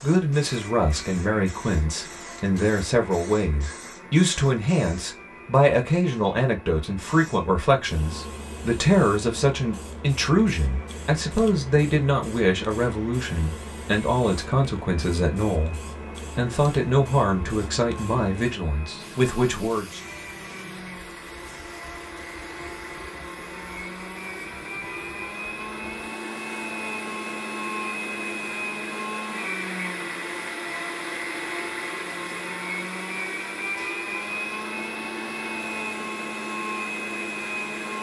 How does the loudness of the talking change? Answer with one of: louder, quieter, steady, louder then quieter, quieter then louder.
steady.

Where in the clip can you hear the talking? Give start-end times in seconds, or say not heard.
0.0-20.0.